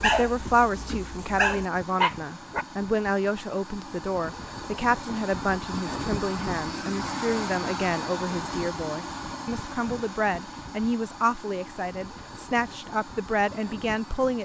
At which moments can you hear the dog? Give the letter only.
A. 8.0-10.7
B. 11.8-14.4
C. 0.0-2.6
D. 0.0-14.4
C.